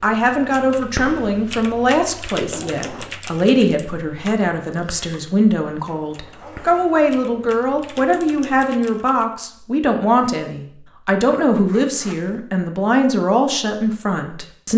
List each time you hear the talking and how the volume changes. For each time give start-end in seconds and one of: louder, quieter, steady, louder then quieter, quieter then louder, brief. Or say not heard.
0.0-14.7 steady.